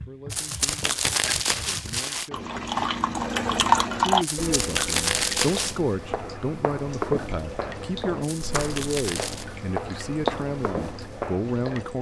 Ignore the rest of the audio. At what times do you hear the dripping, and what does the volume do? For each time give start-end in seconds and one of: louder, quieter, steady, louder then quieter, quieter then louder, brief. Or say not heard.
0.0-11.9 louder then quieter.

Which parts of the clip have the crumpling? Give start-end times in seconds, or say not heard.
0.3-2.3, 4.2-5.8, 8.2-9.4.